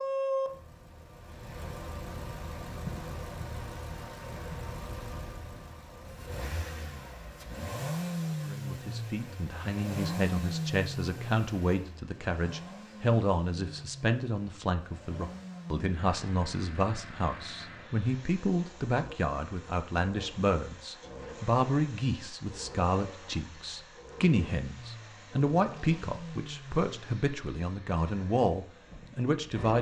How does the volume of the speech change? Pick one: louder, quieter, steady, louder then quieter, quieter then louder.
steady.